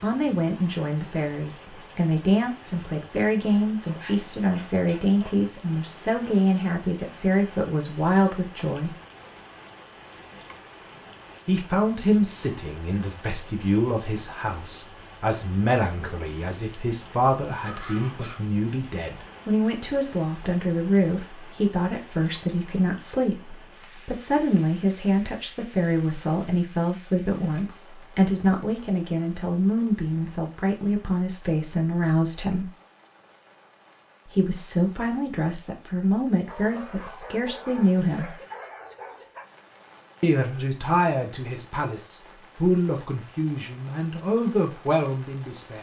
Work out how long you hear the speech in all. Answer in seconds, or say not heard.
40 s.